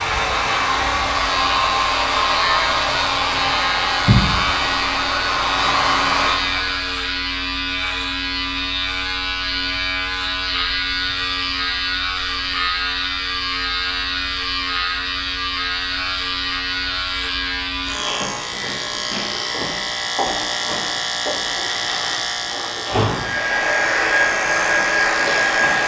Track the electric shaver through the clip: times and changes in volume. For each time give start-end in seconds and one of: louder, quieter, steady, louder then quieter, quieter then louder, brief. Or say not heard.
0.0-25.8 steady.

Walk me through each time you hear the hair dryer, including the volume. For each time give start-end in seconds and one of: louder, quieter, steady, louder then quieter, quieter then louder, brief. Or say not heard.
0.0-6.8 steady
23.1-25.8 brief.